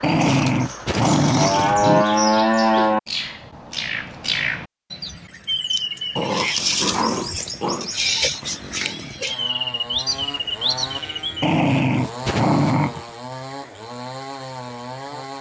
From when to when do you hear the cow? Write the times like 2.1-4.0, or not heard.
1.4-3.0, 10.1-11.6.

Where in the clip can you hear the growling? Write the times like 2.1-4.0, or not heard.
0.0-2.0, 6.2-7.9, 11.4-13.1.